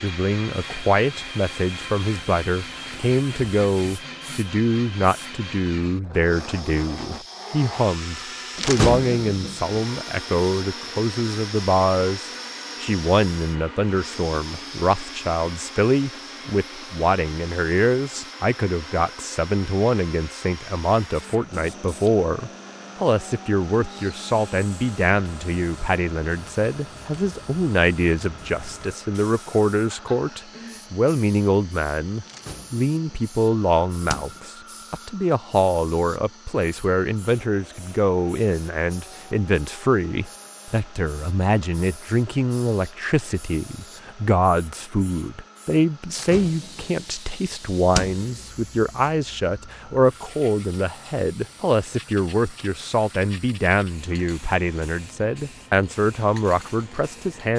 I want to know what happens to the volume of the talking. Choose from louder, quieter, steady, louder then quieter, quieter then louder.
steady.